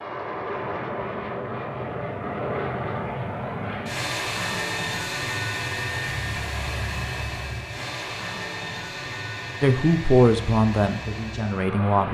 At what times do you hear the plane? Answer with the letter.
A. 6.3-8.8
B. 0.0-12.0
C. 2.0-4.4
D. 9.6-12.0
B.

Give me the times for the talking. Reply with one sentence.
You can hear the talking from 9.6 to 12.0 s.